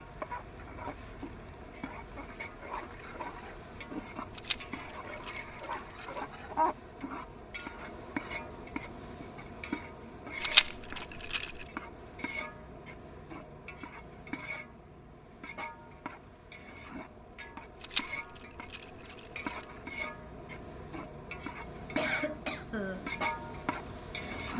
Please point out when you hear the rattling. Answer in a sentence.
The rattling can be heard from 4.3 to 6.2 s, from 10.4 to 11.7 s and from 17.8 to 19.6 s.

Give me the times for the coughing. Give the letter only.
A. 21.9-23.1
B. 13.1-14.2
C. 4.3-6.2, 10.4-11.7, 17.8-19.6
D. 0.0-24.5
A.